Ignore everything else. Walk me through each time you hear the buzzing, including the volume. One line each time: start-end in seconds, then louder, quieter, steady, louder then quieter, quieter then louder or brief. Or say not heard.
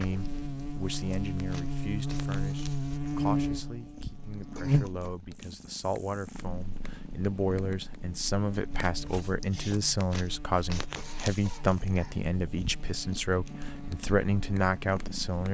0.0-15.5 quieter.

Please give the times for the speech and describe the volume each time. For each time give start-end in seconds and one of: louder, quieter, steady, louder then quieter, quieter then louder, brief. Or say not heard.
0.0-15.5 louder.